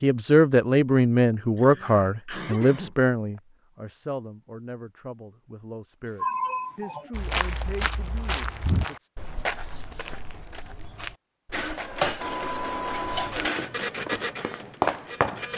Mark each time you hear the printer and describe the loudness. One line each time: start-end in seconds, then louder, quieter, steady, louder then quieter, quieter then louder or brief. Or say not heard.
11.5-15.5 quieter.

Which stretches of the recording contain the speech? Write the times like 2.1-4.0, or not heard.
0.0-9.1.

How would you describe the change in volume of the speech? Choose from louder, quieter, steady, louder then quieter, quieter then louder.
quieter.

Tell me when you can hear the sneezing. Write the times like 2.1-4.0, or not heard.
1.6-3.4, 6.0-7.1, 12.9-13.5.